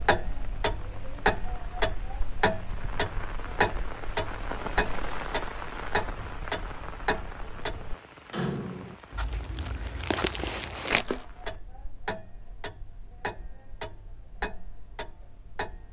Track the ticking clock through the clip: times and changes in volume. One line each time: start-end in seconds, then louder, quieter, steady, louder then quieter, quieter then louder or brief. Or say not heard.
0.0-15.8 quieter.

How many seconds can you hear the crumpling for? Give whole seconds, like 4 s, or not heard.
2 s.